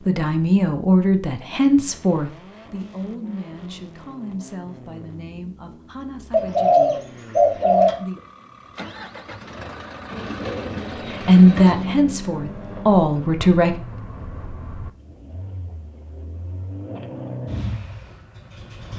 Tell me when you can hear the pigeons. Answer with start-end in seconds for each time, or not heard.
6.3-8.0, 10.1-12.0.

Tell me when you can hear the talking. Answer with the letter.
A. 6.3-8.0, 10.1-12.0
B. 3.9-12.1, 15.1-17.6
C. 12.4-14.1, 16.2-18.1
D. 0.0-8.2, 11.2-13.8
D.